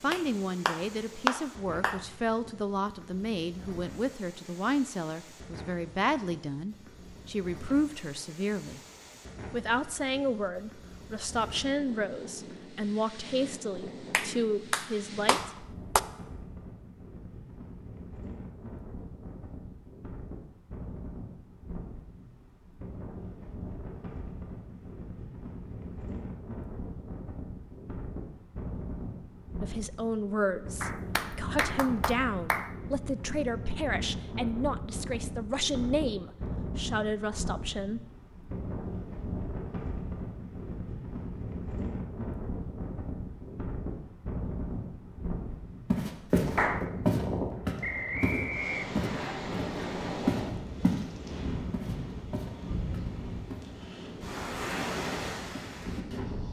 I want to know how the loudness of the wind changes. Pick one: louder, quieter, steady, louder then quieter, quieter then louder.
louder.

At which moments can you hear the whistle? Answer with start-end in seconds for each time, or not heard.
47.8-49.4.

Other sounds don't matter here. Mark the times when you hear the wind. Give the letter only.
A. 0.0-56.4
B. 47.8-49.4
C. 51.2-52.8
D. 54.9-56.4
A.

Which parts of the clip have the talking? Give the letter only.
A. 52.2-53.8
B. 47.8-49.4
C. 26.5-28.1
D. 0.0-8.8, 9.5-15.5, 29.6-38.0
D.